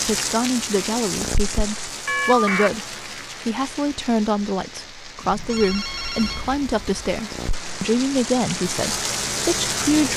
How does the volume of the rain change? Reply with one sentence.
The loudness of the rain goes down, then up.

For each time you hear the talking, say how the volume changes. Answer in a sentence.
You can hear the talking from 0.0 to 10.1 s, at a steady volume.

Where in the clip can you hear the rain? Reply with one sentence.
The rain can be heard from 0.0 to 10.1 s.